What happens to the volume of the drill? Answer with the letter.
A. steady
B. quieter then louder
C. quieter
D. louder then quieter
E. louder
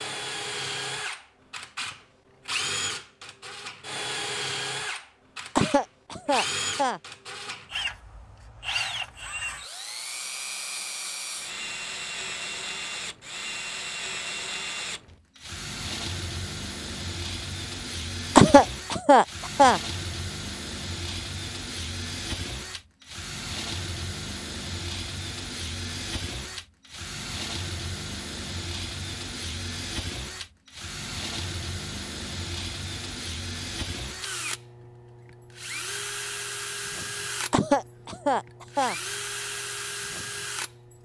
A.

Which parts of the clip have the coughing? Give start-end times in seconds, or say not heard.
5.5-7.0, 18.4-19.8, 37.5-39.0.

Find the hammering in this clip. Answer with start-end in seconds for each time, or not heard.
not heard.